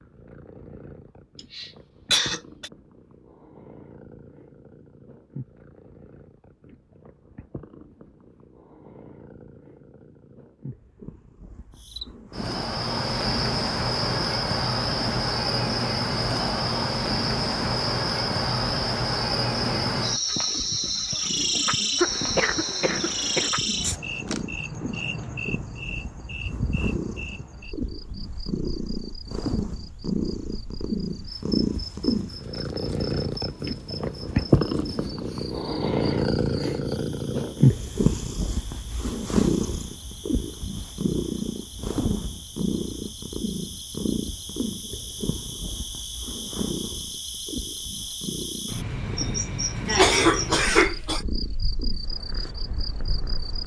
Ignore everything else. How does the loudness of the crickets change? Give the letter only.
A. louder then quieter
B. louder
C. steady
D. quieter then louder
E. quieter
D.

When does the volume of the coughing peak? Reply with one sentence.
The volume of the coughing peaks at 50 seconds.